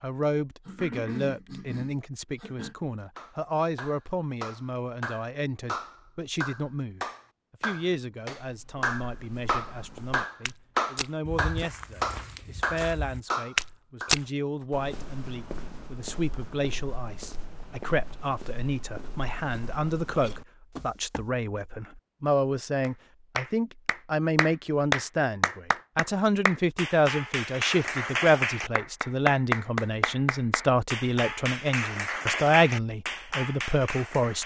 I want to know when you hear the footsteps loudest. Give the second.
14 s.